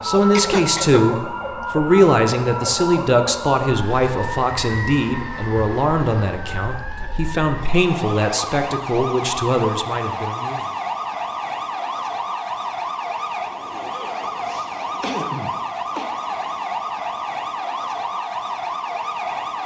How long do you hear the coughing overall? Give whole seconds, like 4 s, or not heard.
2 s.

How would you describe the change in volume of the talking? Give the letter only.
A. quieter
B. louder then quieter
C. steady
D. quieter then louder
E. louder
A.